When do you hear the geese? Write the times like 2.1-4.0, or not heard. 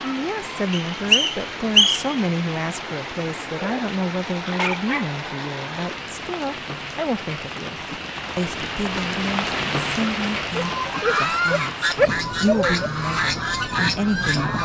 10.7-14.6.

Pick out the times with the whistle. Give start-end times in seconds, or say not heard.
0.7-2.1.